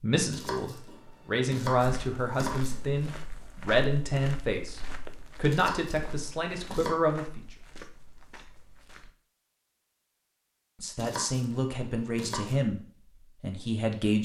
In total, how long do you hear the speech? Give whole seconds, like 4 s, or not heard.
10 s.